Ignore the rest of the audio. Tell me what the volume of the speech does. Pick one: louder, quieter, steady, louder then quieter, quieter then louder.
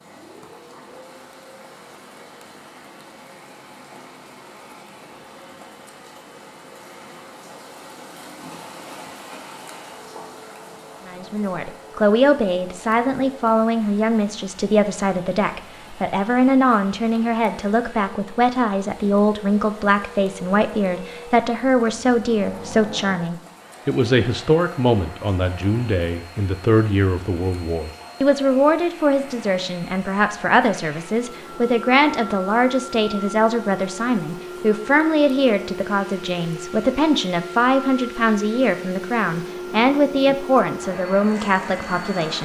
steady.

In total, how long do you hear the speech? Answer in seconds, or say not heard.
31 s.